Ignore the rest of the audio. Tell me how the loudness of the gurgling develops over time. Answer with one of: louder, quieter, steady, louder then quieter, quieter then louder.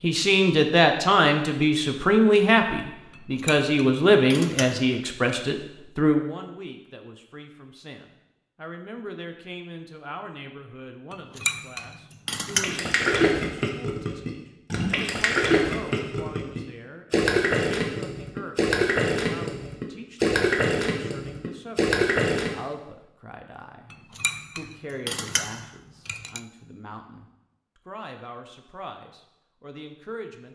steady.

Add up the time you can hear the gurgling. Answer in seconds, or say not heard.
10 s.